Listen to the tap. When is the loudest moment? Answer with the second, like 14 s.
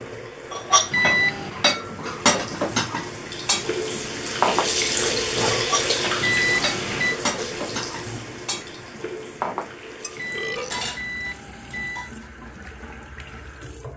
5 s.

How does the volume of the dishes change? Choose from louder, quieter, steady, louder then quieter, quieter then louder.
quieter.